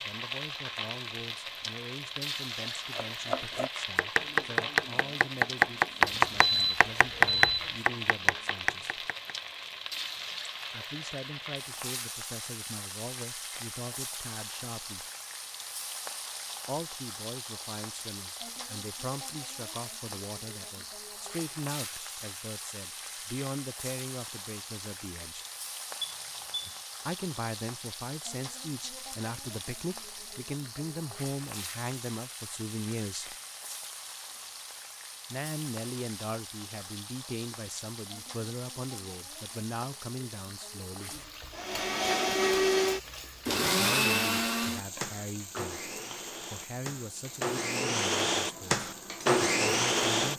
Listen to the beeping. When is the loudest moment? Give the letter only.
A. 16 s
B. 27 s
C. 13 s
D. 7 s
D.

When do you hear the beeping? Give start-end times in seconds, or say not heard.
6.0-7.7, 26.0-26.8.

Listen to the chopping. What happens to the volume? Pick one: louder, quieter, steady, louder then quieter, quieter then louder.
louder then quieter.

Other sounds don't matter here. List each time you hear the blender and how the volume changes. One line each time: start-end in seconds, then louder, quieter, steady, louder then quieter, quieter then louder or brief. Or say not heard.
41.5-50.3 quieter then louder.